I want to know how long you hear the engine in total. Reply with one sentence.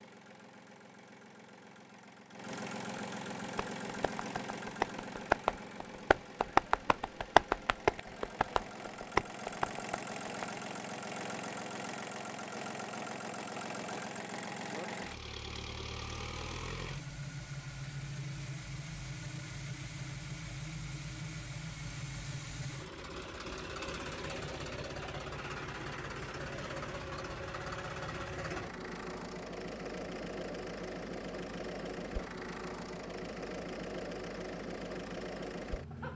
The engine can be heard for 36 seconds in total.